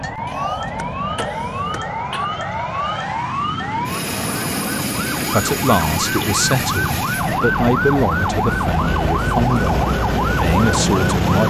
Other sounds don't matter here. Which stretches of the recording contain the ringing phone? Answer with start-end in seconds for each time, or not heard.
not heard.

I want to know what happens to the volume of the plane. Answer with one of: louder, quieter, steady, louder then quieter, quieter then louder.
steady.